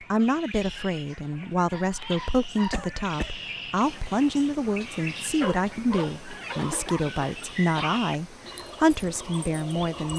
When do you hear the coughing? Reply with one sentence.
The coughing can be heard from 2.7 to 3.4 s and from 6.5 to 8.0 s.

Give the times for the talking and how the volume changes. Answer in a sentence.
You can hear the talking from 0.1 to 10.1 s, at a steady volume.